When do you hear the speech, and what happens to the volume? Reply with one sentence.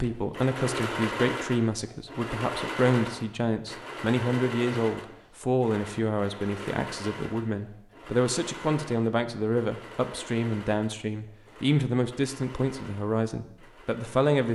You can hear the speech from 0.0 to 14.5 s, at a steady volume.